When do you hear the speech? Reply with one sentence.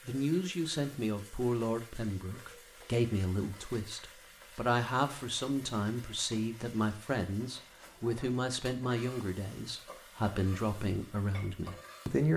You can hear the speech from 0.1 to 12.3 s.